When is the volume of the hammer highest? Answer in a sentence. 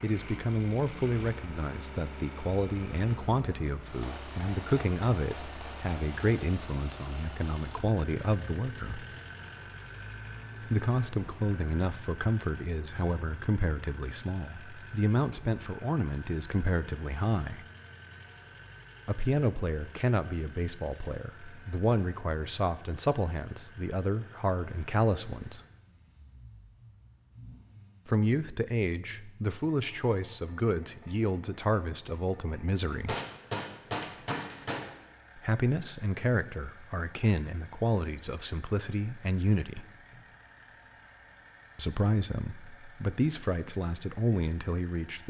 The volume of the hammer peaks at 34 seconds.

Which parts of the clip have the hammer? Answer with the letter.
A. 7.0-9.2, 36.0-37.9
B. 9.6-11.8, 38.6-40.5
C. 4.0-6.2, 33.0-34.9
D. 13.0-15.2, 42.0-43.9
C.